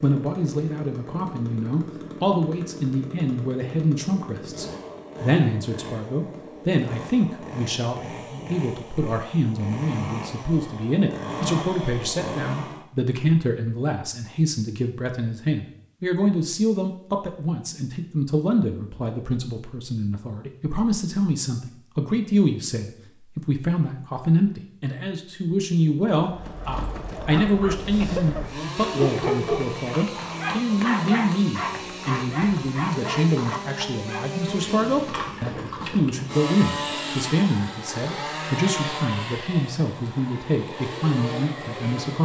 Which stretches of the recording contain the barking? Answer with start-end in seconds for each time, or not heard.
27.1-34.4.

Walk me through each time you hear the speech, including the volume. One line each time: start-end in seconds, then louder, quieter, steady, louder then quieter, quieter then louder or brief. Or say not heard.
0.0-42.2 steady.